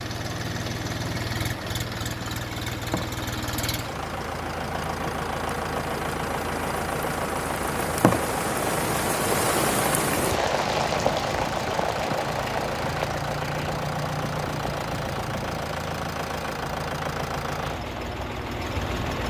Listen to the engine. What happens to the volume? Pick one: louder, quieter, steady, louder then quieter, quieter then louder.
steady.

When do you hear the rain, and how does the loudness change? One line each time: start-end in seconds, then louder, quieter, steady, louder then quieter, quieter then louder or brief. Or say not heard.
0.0-18.9 louder then quieter.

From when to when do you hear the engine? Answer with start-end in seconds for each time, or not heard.
0.0-19.2.